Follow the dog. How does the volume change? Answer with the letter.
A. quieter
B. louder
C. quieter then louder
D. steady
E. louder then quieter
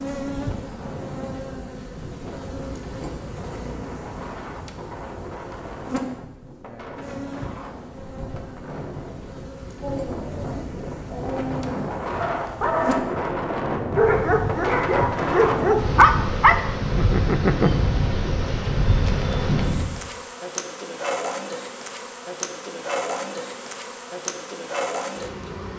B.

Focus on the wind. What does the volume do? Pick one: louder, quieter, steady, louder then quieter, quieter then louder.
louder.